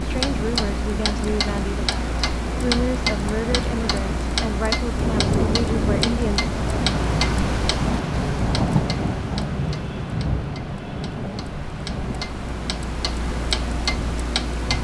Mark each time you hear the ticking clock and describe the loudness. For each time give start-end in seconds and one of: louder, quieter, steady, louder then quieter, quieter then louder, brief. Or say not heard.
0.0-14.7 quieter then louder.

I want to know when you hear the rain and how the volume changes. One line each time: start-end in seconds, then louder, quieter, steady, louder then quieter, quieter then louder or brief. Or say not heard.
0.0-14.7 louder then quieter.